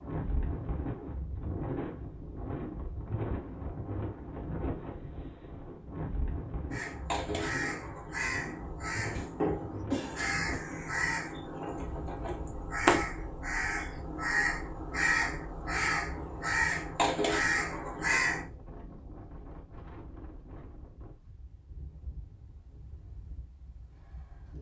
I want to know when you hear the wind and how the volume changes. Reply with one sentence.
The wind can be heard from 0.0 to 24.5 s, getting quieter.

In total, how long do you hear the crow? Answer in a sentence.
The crow can be heard for 12 seconds in total.